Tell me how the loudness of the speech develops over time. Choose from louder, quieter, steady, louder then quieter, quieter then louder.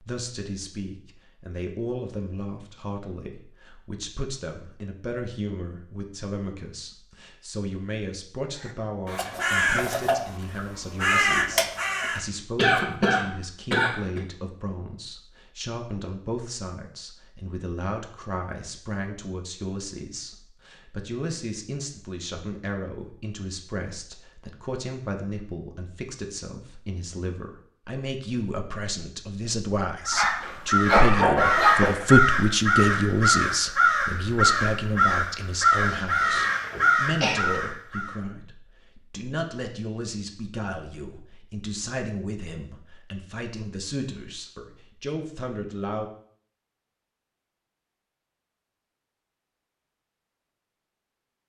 louder then quieter.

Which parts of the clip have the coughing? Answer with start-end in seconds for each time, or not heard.
12.6-14.2, 30.4-31.9, 35.9-37.4.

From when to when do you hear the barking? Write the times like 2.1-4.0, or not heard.
30.1-31.9.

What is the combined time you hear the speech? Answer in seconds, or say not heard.
46 s.